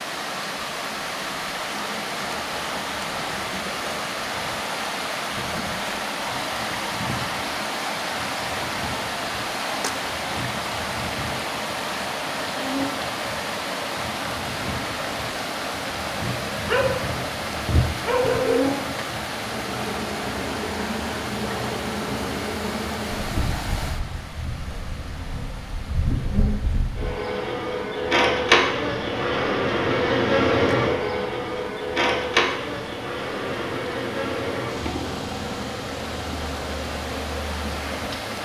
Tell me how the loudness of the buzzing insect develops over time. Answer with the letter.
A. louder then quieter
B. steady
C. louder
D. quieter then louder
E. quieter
C.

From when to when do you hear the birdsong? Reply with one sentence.
The birdsong can't be heard in this clip.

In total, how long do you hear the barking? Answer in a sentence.
You can hear the barking for 2 seconds altogether.